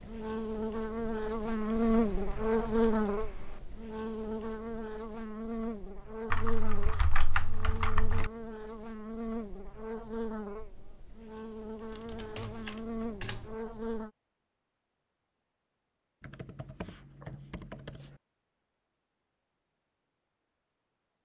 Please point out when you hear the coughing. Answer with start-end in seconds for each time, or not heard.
not heard.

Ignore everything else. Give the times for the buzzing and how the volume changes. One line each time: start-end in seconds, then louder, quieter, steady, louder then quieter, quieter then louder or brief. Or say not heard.
0.0-14.1 quieter.